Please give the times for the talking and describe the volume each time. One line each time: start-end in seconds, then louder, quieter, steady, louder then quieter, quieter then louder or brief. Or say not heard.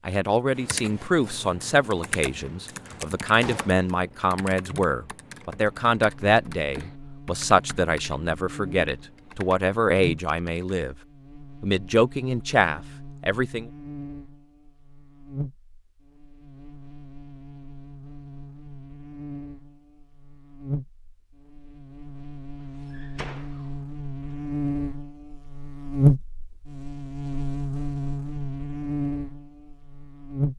0.1-10.9 steady
11.6-13.7 brief.